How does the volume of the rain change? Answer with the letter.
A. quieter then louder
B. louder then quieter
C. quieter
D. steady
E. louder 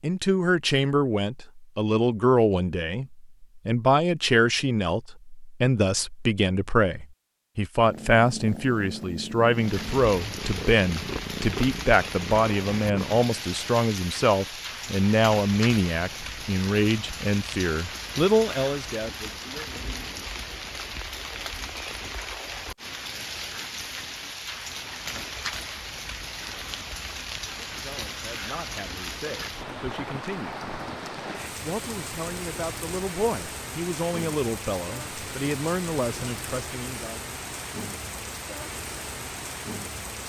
D.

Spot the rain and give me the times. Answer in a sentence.
You can hear the rain from 9.6 to 40.2 s.